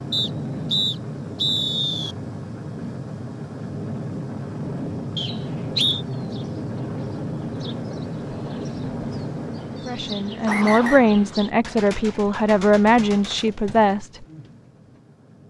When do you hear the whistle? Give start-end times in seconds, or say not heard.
0.1-2.1, 5.2-6.0, 10.4-11.1.